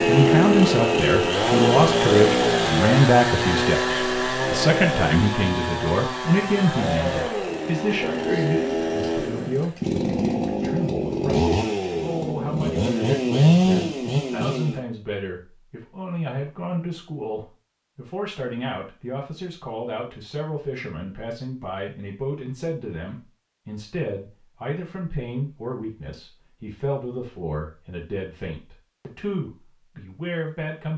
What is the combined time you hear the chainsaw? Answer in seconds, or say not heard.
15 s.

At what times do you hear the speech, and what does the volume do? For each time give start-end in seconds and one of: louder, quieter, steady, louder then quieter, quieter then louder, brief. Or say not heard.
0.1-30.9 quieter.